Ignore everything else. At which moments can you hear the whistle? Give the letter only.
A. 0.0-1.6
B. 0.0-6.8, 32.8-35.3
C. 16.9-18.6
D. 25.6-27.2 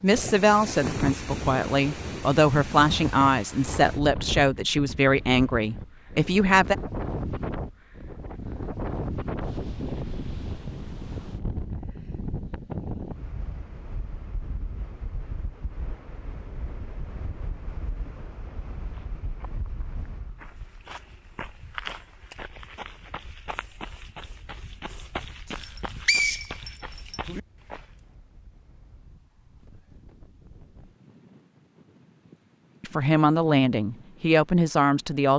D.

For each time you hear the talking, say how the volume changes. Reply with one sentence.
You can hear the talking from 0.0 to 6.8 s, at a steady volume; and briefly from 32.8 to 35.3 s.